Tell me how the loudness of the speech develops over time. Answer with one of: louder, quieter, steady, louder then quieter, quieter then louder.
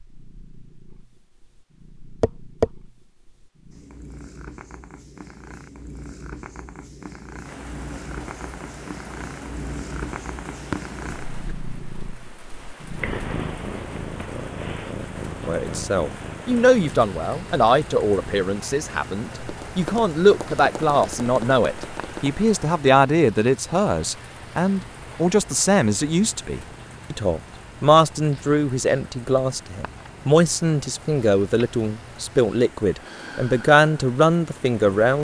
steady.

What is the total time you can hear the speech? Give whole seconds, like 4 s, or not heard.
20 s.